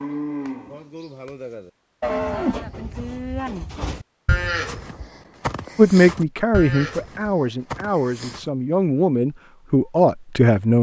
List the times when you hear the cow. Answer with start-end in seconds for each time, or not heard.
0.0-8.5.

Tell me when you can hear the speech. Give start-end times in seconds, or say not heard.
5.8-10.7.